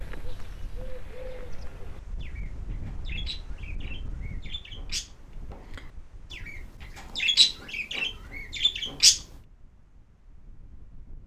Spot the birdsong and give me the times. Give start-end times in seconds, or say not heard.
0.0-9.2.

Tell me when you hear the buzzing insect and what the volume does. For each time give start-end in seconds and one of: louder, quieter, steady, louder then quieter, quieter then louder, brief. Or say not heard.
not heard.